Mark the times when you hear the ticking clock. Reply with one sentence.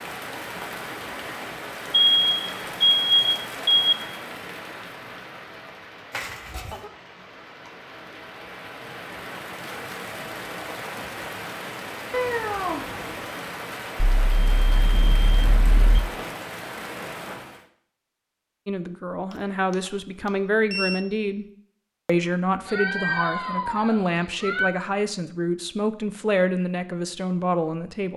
You can't hear the ticking clock here.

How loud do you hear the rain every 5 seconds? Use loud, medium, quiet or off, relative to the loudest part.
loud, medium, loud, loud, off, off.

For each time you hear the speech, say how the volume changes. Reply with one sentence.
You can hear the speech briefly from 18.6 to 21.4 s; and from 22.1 to 28.1 s, at a steady volume.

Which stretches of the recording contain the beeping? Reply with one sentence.
You can hear the beeping from 2.1 to 4.0 s, from 13.9 to 16.0 s and from 19.3 to 21.0 s.